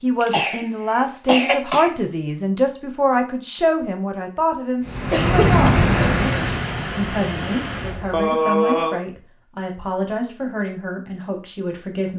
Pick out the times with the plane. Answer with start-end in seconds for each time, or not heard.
4.8-8.3.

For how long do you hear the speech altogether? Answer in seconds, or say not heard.
12 s.